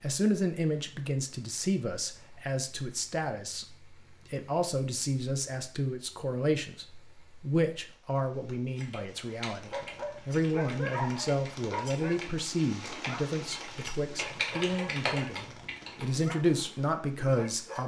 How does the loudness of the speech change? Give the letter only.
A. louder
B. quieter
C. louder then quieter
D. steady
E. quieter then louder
D.